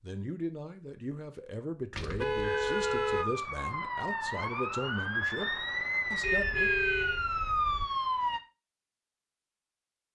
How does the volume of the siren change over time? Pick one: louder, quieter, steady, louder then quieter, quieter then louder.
louder.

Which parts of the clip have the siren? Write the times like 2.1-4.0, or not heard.
2.4-8.4.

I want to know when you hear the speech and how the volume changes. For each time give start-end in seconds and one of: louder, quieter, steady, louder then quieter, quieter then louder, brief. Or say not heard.
0.0-6.7 steady.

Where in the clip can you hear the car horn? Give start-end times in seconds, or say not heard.
1.9-3.2, 6.2-7.8.